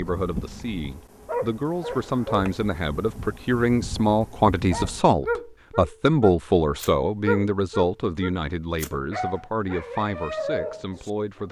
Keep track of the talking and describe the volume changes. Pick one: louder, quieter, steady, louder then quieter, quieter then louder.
louder then quieter.